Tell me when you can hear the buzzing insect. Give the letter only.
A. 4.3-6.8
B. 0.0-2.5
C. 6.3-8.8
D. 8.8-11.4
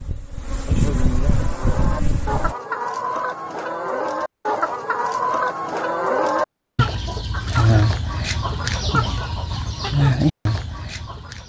B.